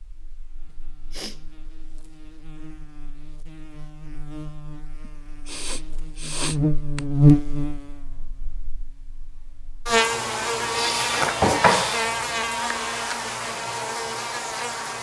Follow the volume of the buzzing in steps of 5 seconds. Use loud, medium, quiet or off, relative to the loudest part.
quiet, loud, loud.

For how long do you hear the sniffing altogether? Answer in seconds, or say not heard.
4 s.